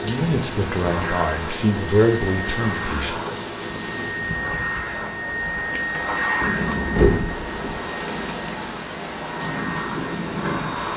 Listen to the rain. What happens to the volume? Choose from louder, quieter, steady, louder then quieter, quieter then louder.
quieter then louder.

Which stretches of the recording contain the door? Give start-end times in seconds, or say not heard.
6.4-7.8.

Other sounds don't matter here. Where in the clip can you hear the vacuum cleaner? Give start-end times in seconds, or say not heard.
0.0-10.9.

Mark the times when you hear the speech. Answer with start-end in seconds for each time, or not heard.
0.0-3.1.